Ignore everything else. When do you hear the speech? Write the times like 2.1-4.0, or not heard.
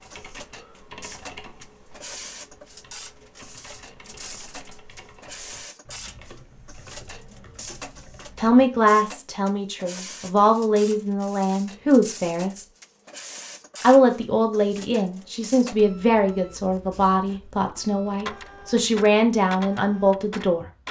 8.3-12.7, 13.8-20.6.